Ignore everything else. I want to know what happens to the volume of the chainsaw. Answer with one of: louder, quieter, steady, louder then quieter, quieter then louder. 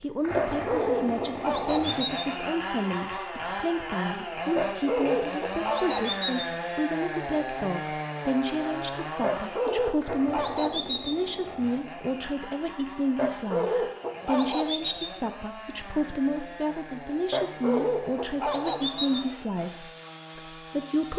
quieter.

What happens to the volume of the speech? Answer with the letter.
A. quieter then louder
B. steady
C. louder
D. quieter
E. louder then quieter
B.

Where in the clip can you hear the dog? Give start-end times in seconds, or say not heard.
0.3-2.4, 4.5-6.5, 9.2-11.2, 13.2-15.2, 17.3-19.3.